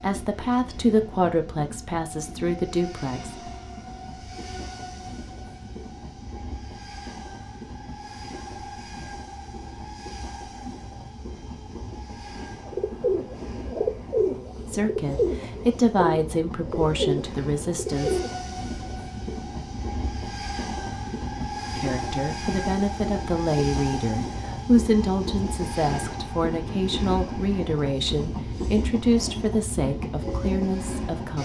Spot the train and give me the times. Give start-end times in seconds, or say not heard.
0.0-31.3.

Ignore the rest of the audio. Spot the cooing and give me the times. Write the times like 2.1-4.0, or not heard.
12.7-18.4.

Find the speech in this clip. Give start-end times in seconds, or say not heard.
0.0-3.3, 14.7-18.2, 21.8-31.3.